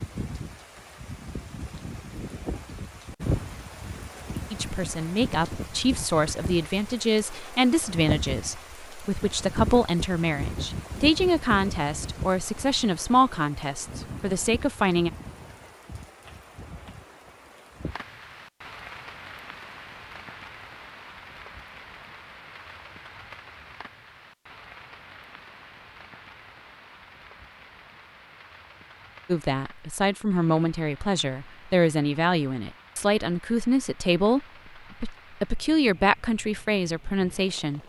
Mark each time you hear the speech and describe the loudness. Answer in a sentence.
The speech can be heard from 4.5 to 15.1 s, at a steady volume; and from 29.2 to 37.8 s, at a steady volume.